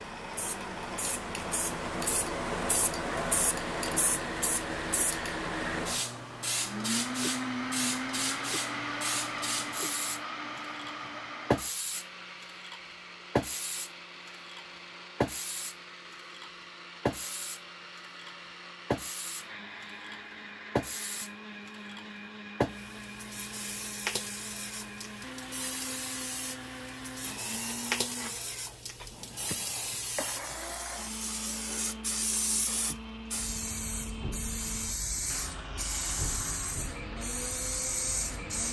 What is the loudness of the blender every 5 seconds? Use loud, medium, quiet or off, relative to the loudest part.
medium, loud, medium, medium, medium, medium, medium, medium.